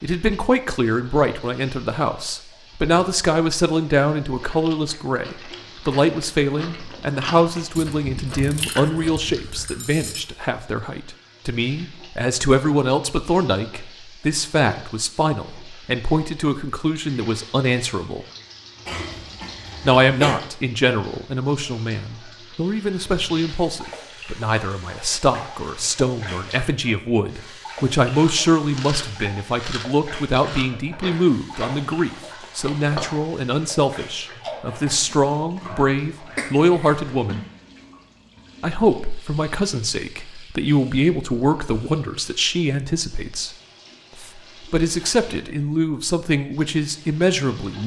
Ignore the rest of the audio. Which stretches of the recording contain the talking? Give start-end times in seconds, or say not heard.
0.0-18.2, 19.8-37.5, 38.6-43.5, 44.2-47.8.